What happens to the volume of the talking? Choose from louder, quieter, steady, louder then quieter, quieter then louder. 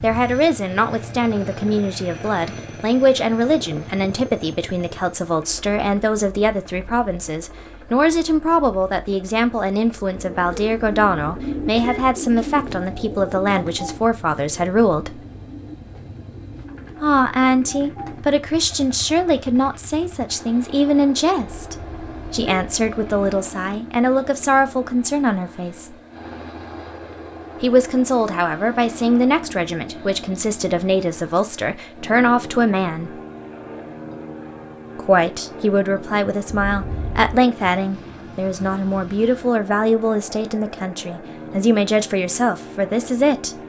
steady.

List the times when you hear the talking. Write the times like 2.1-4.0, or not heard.
0.0-15.2, 17.0-25.9, 27.6-33.2, 35.0-43.6.